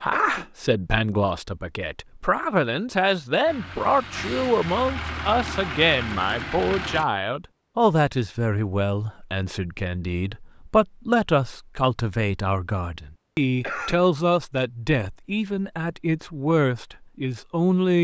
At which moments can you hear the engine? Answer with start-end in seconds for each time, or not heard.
3.5-7.0.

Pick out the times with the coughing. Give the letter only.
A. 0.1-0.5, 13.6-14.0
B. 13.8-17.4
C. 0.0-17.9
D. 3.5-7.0
A.